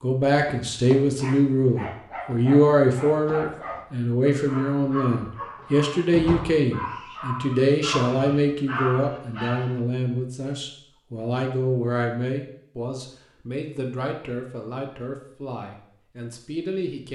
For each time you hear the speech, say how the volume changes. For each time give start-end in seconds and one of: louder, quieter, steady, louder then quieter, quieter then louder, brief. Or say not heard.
0.0-17.0 quieter.